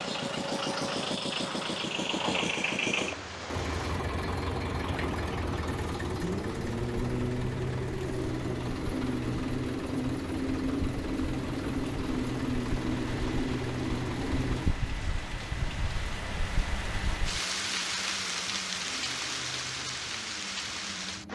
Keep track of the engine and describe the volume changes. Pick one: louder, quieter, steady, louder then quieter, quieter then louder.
quieter.